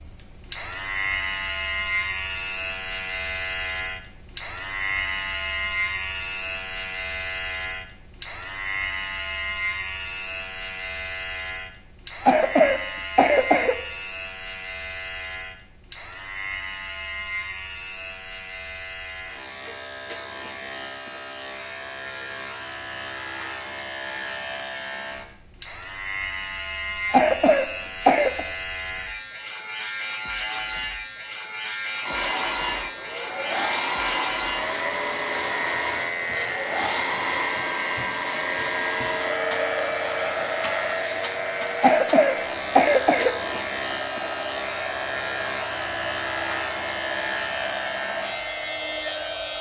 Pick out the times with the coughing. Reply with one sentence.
You can hear the coughing from 12.2 to 13.8 s, from 27.1 to 28.4 s and from 41.8 to 43.4 s.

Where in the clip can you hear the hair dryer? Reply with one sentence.
You can hear the hair dryer from 32.0 to 49.5 s.